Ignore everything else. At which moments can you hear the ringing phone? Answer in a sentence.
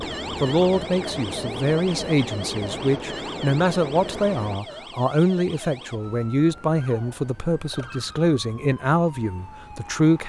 You can't hear the ringing phone here.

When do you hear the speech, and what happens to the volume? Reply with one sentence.
You can hear the speech from 0.0 to 10.2 s, at a steady volume.